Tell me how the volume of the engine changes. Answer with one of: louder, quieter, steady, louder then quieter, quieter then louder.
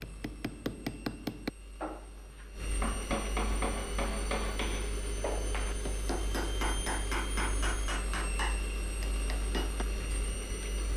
louder.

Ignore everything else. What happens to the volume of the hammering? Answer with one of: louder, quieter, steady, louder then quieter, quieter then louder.
steady.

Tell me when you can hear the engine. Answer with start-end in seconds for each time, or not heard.
0.0-10.9.